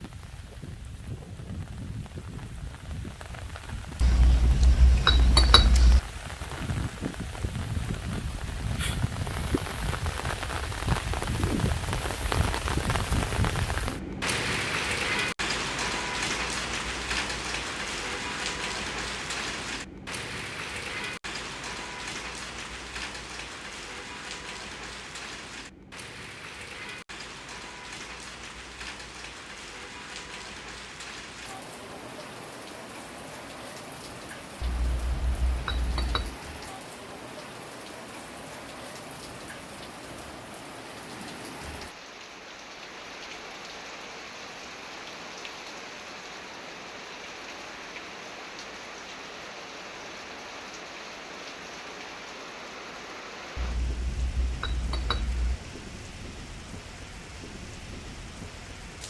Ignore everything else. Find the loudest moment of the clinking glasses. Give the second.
5 s.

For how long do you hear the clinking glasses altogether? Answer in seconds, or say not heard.
6 s.